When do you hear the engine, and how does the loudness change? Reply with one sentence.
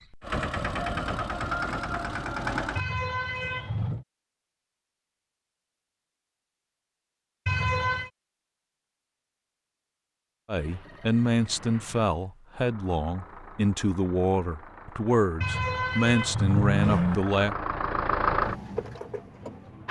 The engine can be heard briefly from 0.0 to 2.9 s; and from 10.6 to 19.8 s, getting louder.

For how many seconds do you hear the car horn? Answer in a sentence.
The car horn can be heard for 4 seconds in total.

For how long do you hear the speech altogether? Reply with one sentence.
The speech can be heard for 7 seconds in total.